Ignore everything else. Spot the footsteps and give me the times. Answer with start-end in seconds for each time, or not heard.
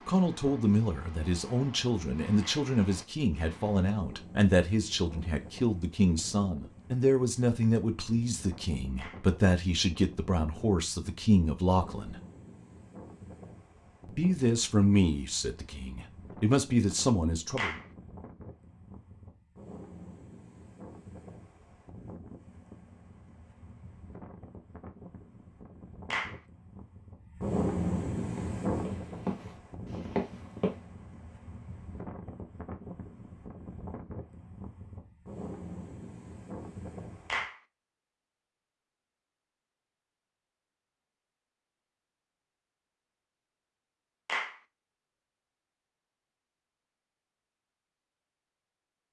28.2-30.8.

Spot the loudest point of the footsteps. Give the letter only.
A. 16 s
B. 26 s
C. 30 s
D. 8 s
C.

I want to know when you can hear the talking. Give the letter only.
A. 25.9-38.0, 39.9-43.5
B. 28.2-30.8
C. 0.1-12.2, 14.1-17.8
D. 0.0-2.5
C.